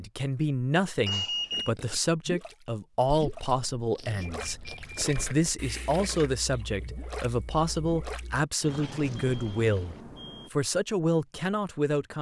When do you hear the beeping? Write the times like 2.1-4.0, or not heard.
1.1-1.7, 4.2-5.1, 8.7-10.5.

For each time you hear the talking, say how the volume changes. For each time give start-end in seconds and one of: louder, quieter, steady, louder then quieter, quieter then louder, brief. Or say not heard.
0.0-12.1 steady.